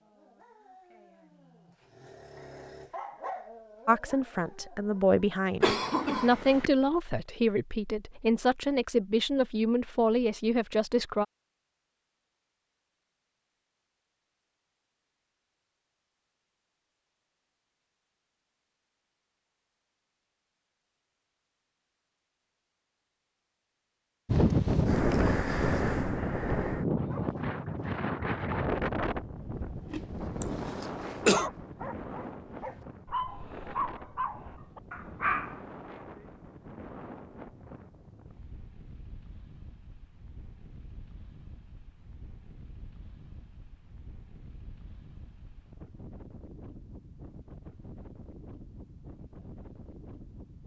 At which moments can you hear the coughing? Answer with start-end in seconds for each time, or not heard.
5.6-6.7, 30.4-31.5.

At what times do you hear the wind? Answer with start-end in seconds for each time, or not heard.
24.2-50.6.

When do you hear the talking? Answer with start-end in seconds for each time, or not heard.
3.9-11.2.